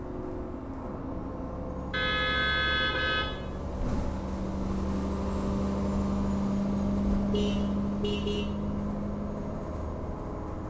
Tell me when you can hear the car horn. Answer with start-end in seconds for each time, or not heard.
1.9-3.4, 7.3-8.5.